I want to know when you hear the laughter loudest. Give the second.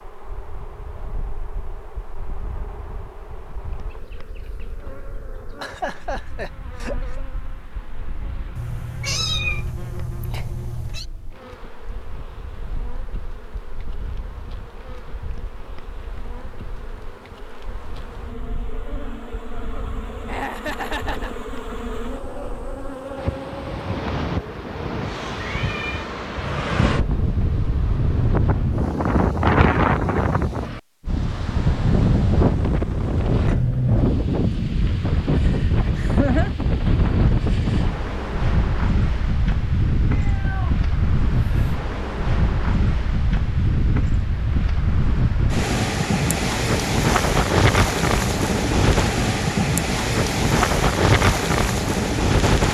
36 s.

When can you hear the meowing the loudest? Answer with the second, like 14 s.
9 s.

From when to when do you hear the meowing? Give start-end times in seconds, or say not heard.
8.6-11.1, 25.4-26.1, 40.1-41.8.